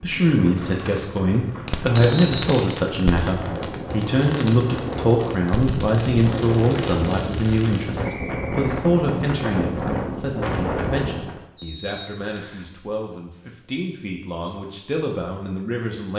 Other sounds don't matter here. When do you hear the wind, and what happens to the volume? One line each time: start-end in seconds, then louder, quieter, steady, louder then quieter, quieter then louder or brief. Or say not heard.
0.0-11.4 louder.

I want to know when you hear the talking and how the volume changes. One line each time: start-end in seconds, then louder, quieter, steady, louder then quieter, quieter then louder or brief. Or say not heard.
0.0-16.1 quieter.